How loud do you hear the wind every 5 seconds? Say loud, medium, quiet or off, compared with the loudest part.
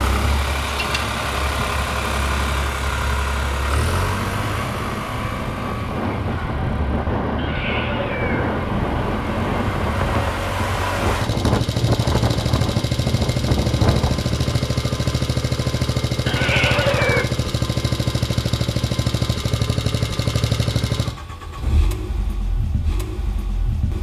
medium, loud, loud, off, off.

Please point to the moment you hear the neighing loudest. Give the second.
17 s.